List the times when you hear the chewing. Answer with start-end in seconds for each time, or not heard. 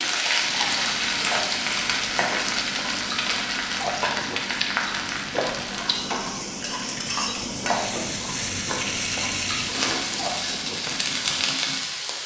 0.4-11.4.